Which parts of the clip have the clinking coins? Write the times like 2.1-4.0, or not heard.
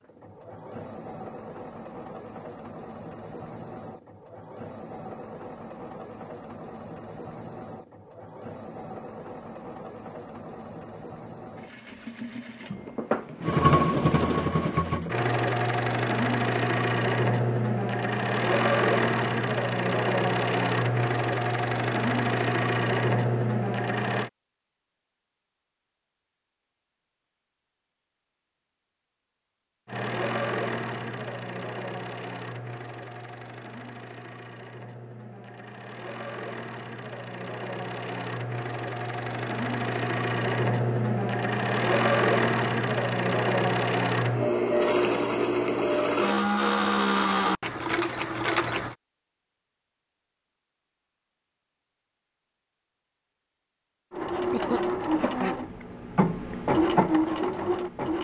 not heard.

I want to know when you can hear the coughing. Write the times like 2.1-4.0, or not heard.
54.5-55.5.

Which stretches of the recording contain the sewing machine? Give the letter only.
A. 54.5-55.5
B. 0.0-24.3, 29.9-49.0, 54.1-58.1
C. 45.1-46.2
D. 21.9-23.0
B.